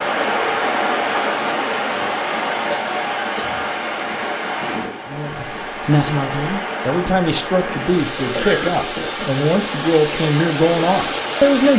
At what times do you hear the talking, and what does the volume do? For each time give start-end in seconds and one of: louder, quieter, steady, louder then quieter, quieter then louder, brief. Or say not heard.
5.0-11.7 steady.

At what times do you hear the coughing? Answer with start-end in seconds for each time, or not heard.
2.7-3.6, 8.2-9.3.